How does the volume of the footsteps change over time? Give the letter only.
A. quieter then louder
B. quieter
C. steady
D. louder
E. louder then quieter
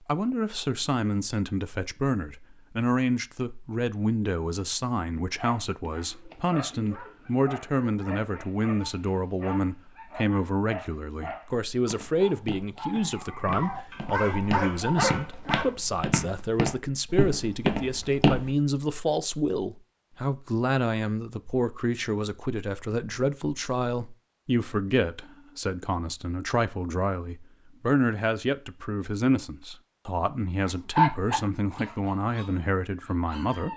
D.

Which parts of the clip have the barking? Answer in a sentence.
The barking can be heard from 5.3 to 15.7 s and from 30.6 to 33.7 s.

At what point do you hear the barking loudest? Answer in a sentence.
The volume of the barking peaks at 31 seconds.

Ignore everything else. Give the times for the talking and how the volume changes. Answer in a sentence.
The talking can be heard from 0.0 to 33.7 s, at a steady volume.